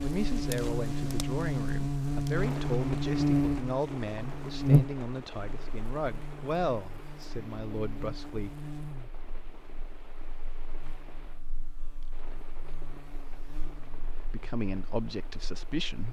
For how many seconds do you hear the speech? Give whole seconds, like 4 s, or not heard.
10 s.